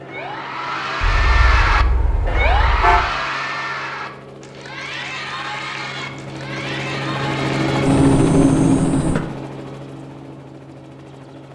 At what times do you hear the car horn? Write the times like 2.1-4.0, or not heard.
1.0-3.0, 7.8-9.2.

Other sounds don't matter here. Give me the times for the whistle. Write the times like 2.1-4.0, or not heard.
not heard.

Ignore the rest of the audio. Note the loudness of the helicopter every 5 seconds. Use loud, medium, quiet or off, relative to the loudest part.
quiet, loud, quiet.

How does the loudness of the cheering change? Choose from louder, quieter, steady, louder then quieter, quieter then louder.
quieter.